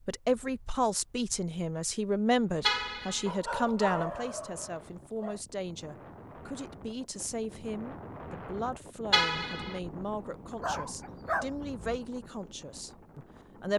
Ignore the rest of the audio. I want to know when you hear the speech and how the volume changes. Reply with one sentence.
The speech can be heard from 0.1 to 13.7 s, getting quieter.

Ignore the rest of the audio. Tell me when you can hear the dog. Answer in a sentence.
The dog can be heard from 3.2 to 5.4 s and from 10.6 to 12.0 s.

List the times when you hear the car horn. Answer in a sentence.
The car horn can be heard from 2.6 to 3.3 s and from 9.1 to 9.8 s.